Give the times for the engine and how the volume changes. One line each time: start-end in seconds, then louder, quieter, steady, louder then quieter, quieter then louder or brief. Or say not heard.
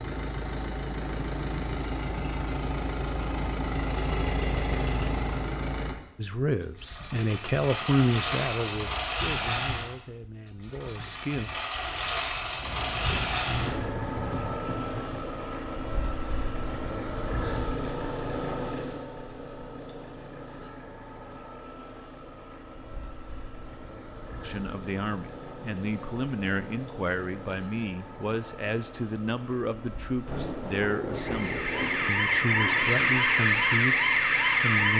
0.0-34.9 quieter.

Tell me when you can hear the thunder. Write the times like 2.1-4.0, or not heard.
12.6-15.2, 30.2-33.1.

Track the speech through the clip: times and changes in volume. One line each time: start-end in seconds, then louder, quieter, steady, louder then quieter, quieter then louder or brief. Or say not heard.
6.2-11.5 louder then quieter
24.4-34.9 steady.